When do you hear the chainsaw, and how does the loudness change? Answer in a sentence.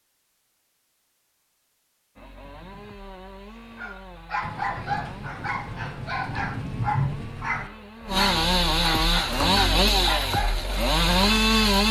The chainsaw can be heard from 2.1 to 11.8 s, getting louder.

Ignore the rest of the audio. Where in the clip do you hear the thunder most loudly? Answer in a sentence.
The loudest moment of the thunder is at 7 seconds.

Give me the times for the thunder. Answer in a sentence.
You can hear the thunder from 4.4 to 7.7 s.